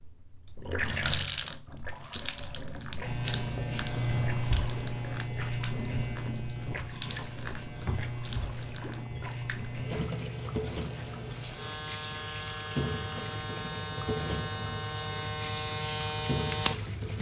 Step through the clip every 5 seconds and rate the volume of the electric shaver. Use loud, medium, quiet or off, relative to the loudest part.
loud, medium, medium, loud.